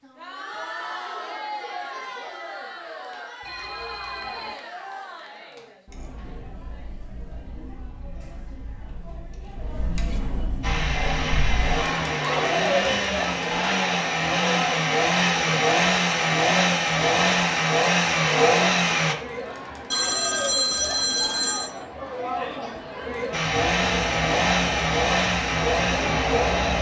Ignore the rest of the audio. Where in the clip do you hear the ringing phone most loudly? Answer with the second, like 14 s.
21 s.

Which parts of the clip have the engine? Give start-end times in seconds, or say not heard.
10.6-19.1, 23.3-26.7.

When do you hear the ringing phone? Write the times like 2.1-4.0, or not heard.
3.4-4.5, 19.9-21.8.